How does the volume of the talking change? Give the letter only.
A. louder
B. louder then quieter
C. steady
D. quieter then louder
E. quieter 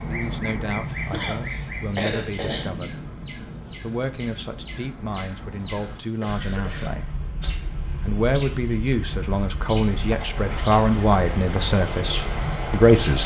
A.